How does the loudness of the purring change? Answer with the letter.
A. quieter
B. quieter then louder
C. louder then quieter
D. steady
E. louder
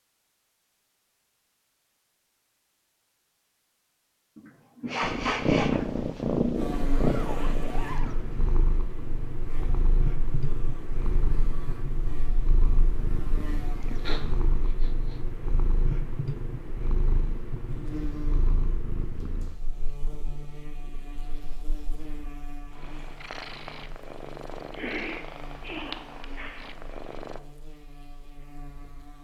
A.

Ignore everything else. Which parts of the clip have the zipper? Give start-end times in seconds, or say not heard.
6.9-8.2.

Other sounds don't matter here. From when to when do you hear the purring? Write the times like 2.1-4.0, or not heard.
5.0-27.4.